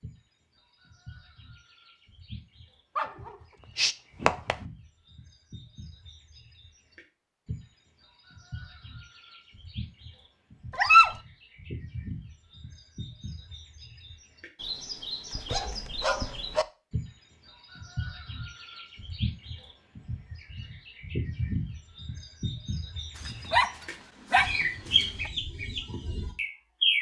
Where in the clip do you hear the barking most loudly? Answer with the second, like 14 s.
11 s.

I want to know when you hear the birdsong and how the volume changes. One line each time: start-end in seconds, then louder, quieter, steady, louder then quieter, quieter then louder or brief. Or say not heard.
0.0-26.9 louder.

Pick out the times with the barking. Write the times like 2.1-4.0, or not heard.
3.0-4.5, 10.7-11.2, 15.3-16.6, 23.1-25.3.